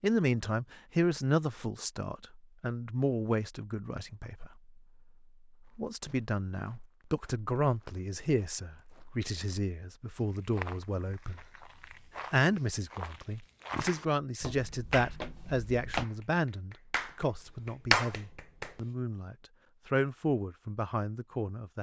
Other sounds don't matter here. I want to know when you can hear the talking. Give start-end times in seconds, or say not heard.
0.0-4.8, 5.8-11.4, 12.3-21.7.